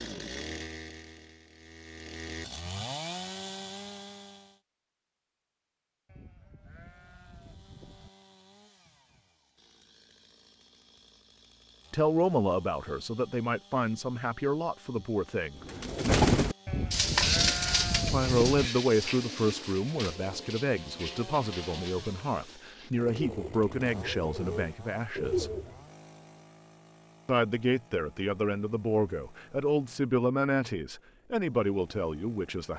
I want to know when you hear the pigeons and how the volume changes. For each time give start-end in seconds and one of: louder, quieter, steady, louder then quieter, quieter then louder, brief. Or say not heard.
15.6-25.8 quieter then louder.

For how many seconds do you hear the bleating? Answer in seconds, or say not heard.
4 s.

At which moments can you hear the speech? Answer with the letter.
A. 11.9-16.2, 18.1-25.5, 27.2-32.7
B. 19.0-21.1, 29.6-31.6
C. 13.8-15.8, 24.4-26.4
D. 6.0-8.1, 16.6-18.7
A.